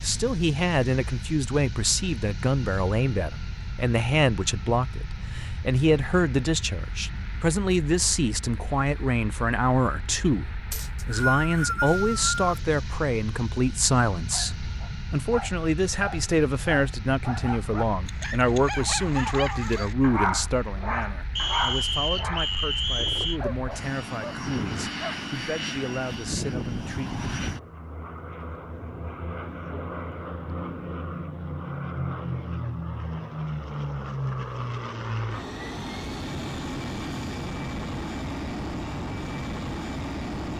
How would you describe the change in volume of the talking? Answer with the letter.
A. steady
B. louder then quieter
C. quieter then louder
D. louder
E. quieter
E.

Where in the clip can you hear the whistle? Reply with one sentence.
You can hear the whistle from 10.7 to 12.6 s and from 21.4 to 23.4 s.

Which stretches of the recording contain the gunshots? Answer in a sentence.
You can't hear the gunshots here.